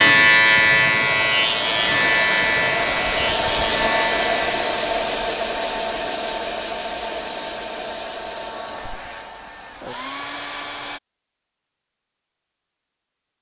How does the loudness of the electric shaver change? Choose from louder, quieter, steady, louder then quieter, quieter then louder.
quieter.